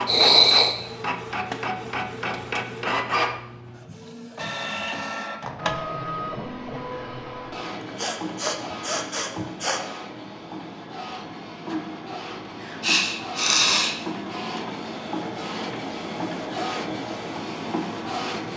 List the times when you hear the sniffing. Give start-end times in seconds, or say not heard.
0.1-0.8, 7.8-9.8, 12.8-13.9.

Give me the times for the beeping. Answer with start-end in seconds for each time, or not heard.
not heard.